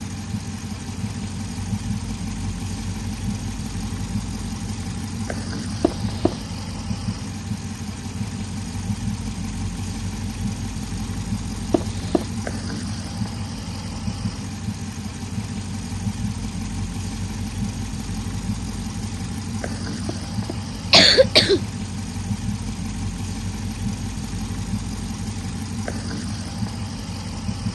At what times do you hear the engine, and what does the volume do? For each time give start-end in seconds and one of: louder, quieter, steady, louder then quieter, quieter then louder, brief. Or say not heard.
0.0-27.7 steady.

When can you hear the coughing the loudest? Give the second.
21 s.